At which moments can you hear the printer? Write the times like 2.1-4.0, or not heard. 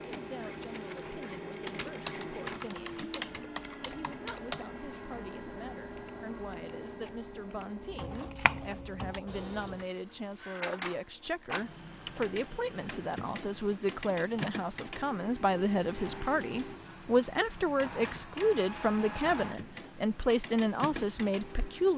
0.0-21.9.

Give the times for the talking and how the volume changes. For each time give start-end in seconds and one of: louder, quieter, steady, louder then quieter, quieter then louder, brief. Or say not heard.
0.1-21.9 louder.